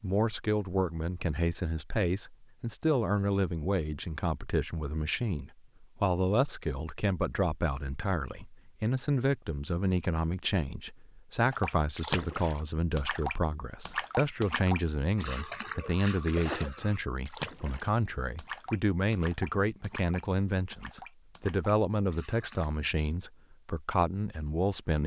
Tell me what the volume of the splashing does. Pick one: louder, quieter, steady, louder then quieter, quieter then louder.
quieter.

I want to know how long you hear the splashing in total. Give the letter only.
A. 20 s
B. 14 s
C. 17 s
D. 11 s
D.